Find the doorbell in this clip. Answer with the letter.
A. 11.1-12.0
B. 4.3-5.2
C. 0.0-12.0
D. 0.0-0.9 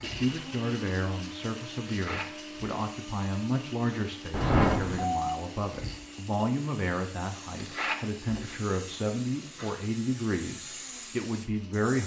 B.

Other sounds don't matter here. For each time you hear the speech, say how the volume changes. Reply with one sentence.
You can hear the speech from 0.0 to 12.0 s, at a steady volume.